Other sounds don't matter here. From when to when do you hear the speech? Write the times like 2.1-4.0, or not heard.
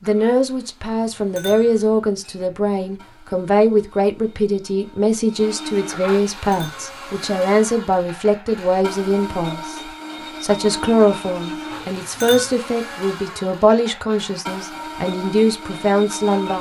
0.0-16.5.